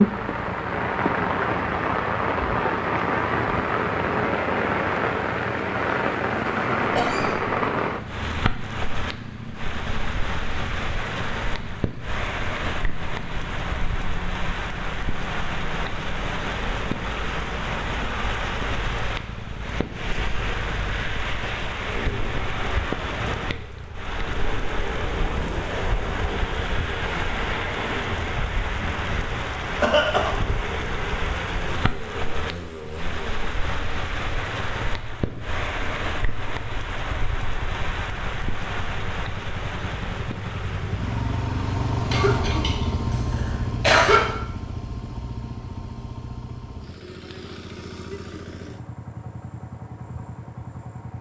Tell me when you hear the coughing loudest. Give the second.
44 s.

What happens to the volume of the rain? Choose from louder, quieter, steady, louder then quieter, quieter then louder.
quieter.